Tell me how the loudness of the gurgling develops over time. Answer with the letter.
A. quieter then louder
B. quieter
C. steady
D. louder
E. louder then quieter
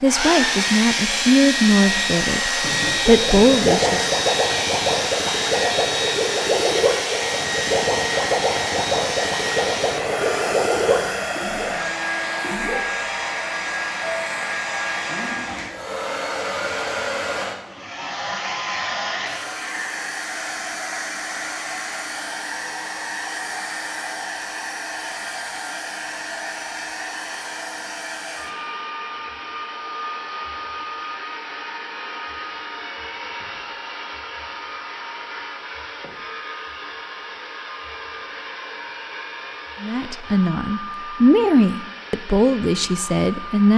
C.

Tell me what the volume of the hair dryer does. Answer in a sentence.
The loudness of the hair dryer goes down.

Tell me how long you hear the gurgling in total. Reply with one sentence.
You can hear the gurgling for 10 seconds altogether.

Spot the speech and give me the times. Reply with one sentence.
The speech can be heard from 0.0 to 4.0 s and from 39.8 to 43.7 s.